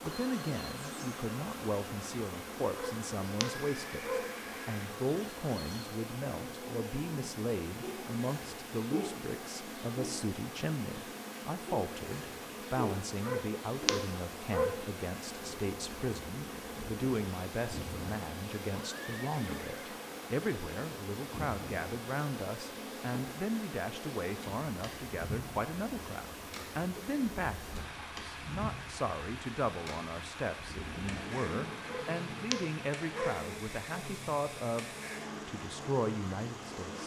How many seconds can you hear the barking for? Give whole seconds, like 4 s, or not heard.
5 s.